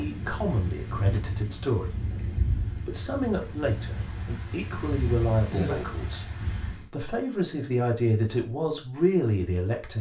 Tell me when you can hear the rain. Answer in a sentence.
You can hear the rain from 0.0 to 6.8 s.